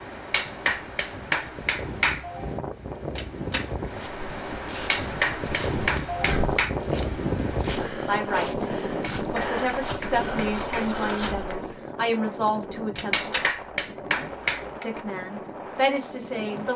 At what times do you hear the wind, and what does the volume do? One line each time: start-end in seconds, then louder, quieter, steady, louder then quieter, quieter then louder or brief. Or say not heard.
0.0-16.7 louder then quieter.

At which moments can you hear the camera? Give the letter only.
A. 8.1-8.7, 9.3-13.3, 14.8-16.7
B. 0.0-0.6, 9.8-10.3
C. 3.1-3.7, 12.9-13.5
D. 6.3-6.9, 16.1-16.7
C.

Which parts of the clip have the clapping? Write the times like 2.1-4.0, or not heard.
0.3-2.3, 4.8-6.8, 9.0-10.9, 13.1-14.8.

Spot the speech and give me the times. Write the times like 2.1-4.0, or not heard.
8.1-8.7, 9.3-13.3, 14.8-16.7.